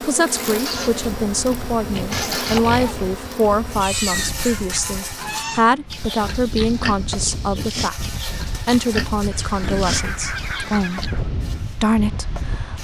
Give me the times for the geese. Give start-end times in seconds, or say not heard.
0.6-1.1, 1.9-2.6, 4.5-5.7, 9.3-11.2.